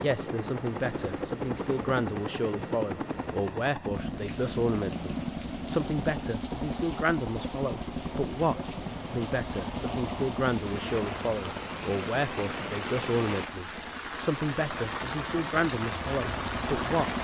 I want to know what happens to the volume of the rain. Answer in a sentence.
The loudness of the rain goes up.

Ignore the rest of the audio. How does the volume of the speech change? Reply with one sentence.
The volume of the speech stays about the same.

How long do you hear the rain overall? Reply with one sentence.
The rain can be heard for 13 seconds in total.